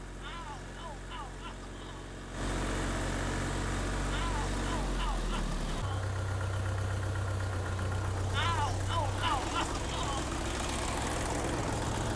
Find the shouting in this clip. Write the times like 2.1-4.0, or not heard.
0.2-2.1, 4.1-6.1, 8.3-10.2.